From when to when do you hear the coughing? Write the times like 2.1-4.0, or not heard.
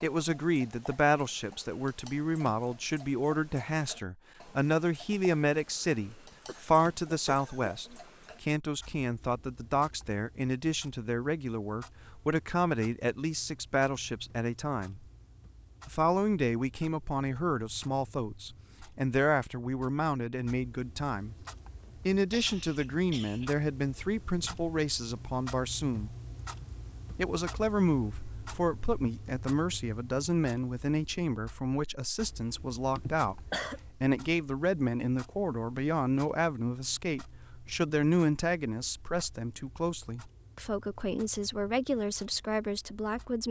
6.5-8.0, 21.8-23.5, 33.0-33.8.